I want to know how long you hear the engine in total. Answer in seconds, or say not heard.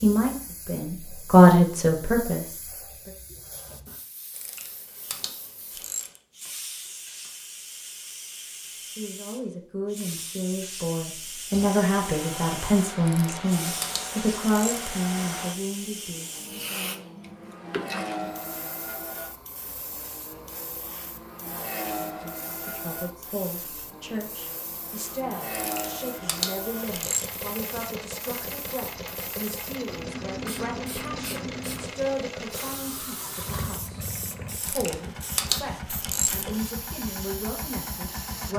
27 s.